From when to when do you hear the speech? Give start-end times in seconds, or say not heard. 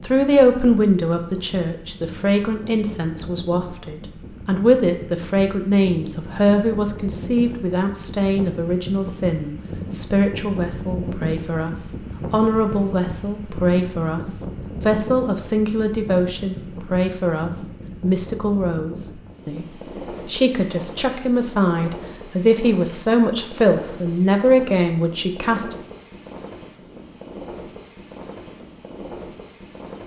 0.0-19.6, 20.2-25.8.